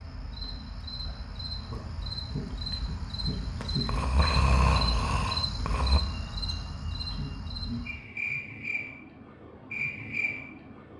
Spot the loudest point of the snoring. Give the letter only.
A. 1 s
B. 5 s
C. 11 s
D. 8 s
B.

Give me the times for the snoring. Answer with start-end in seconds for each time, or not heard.
3.9-6.0.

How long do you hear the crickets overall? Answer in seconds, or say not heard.
11 s.